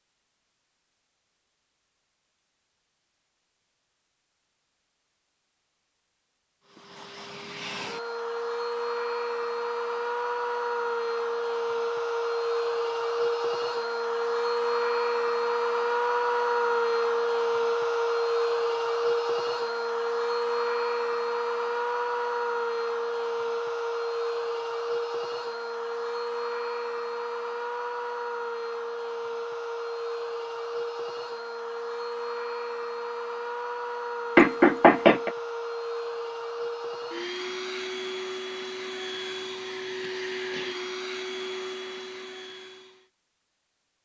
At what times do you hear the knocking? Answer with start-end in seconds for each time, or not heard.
34.4-35.3.